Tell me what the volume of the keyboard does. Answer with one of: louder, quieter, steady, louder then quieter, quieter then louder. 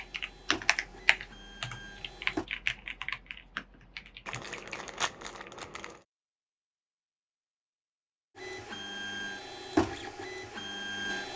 quieter.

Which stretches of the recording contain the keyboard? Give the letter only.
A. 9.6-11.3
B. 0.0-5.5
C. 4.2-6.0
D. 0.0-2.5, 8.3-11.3
B.